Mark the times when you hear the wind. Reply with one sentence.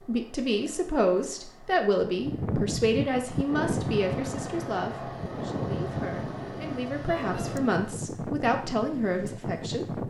The wind can be heard from 2.2 to 10.0 s.